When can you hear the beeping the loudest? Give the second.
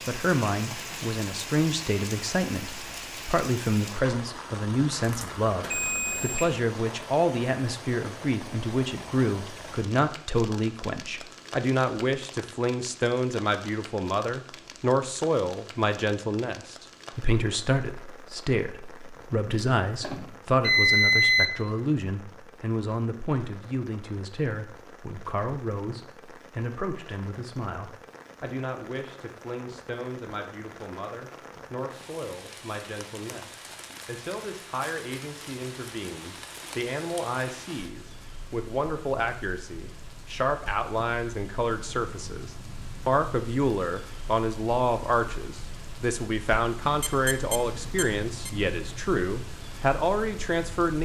21 s.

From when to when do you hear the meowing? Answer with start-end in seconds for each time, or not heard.
not heard.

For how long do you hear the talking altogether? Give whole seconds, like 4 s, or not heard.
51 s.